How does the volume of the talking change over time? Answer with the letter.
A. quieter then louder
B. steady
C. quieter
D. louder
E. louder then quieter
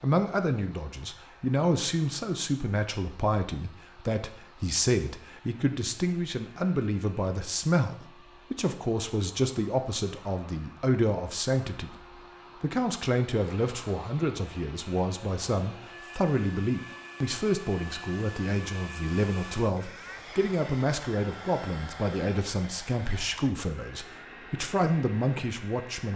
B.